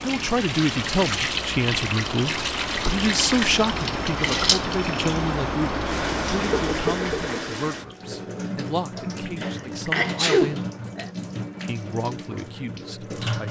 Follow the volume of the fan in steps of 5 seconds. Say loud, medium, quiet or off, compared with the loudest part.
loud, loud, off.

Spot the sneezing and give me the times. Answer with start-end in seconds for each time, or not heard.
9.4-11.1.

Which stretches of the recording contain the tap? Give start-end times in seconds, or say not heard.
0.0-13.4.